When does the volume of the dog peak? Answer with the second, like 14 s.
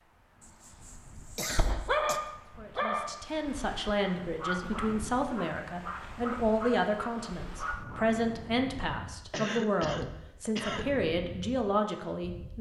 2 s.